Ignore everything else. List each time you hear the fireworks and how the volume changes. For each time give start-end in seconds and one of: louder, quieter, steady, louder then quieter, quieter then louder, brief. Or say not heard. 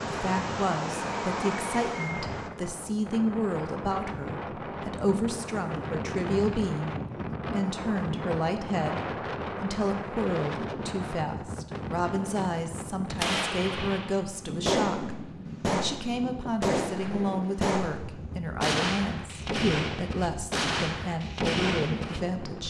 0.0-2.5 brief
13.2-22.3 steady.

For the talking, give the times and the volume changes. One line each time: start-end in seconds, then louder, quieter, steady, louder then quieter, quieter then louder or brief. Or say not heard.
0.1-22.6 steady.